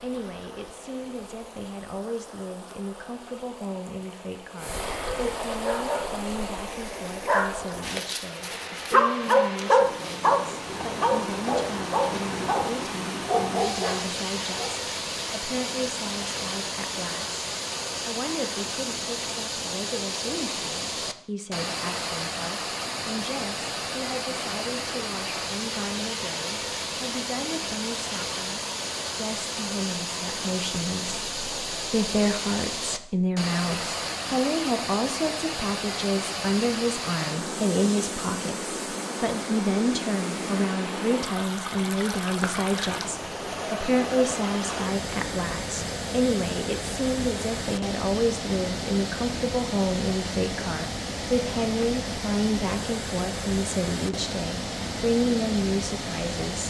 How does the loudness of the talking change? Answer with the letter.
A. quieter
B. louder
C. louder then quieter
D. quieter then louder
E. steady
B.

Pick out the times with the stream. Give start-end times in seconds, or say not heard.
0.0-56.6.